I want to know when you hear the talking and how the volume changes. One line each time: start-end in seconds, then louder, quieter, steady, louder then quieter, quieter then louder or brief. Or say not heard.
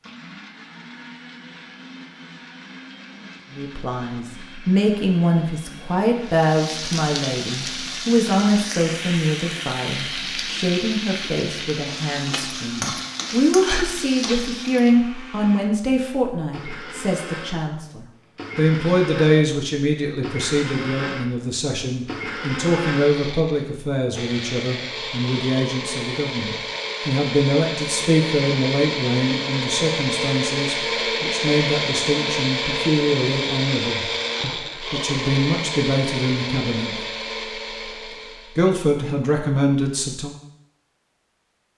3.5-37.0 steady
38.5-40.4 brief.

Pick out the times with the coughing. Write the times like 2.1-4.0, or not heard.
not heard.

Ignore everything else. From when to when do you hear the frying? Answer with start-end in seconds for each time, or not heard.
6.2-14.9.